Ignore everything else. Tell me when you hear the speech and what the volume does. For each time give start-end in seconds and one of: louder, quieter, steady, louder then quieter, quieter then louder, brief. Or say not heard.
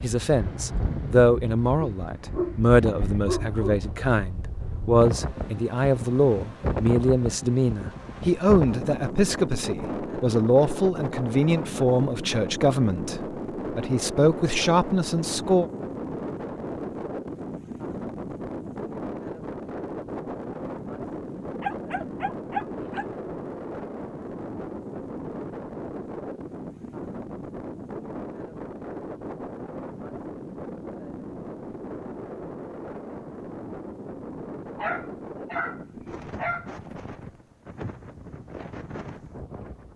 0.0-15.7 steady.